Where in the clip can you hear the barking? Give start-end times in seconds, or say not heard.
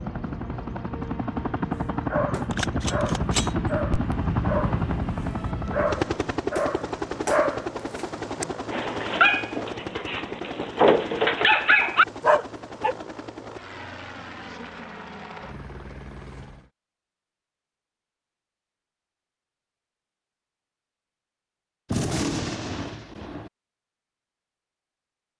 1.7-12.9.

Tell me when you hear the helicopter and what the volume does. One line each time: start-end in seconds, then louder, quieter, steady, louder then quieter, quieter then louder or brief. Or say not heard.
0.0-16.7 quieter.